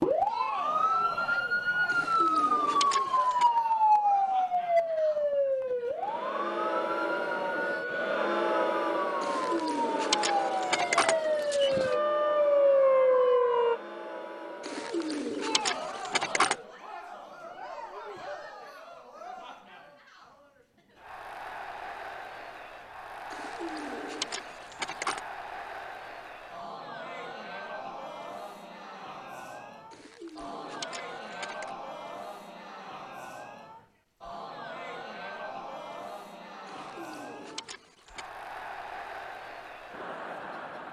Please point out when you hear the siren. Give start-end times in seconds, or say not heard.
0.0-13.8.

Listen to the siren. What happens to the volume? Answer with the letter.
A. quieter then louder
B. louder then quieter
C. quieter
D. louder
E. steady
A.